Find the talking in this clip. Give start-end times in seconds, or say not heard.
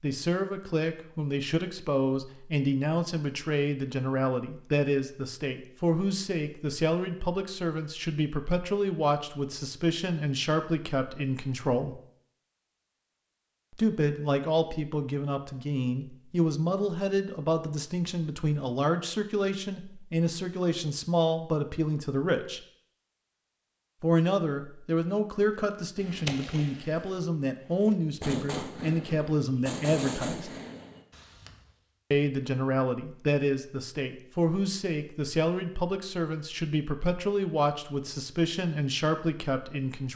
0.0-12.0, 13.7-22.6, 24.0-30.5, 32.1-40.1.